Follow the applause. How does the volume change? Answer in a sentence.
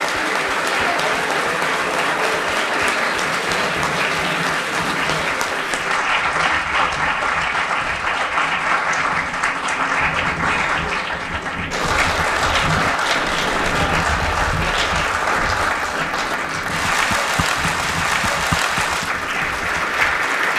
The volume of the applause stays about the same.